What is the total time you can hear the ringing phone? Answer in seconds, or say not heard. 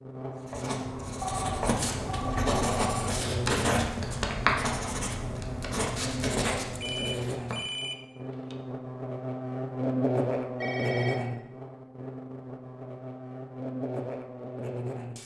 4 s.